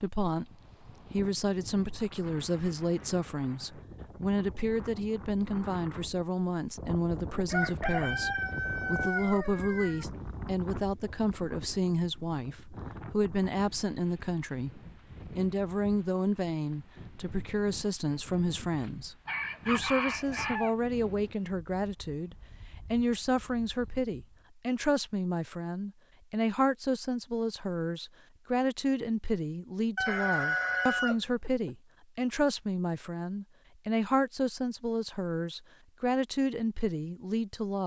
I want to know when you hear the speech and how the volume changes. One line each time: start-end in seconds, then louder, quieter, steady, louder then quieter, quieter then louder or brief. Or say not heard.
0.0-37.8 steady.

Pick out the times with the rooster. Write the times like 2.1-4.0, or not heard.
7.5-10.1, 19.2-20.8, 29.9-31.7.